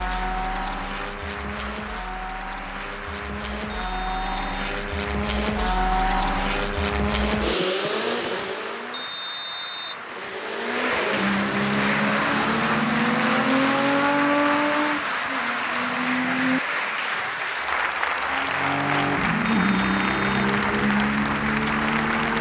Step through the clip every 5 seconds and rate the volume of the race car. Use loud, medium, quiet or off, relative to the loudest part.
medium, loud, loud, loud, loud.